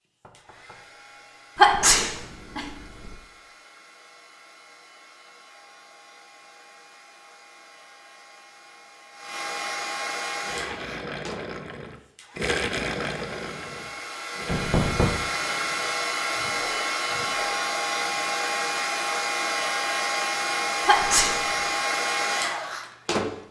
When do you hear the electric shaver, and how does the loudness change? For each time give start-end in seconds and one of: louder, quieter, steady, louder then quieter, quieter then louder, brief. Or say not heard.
not heard.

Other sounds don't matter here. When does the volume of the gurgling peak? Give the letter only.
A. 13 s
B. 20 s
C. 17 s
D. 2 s
A.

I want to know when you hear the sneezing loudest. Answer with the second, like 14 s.
2 s.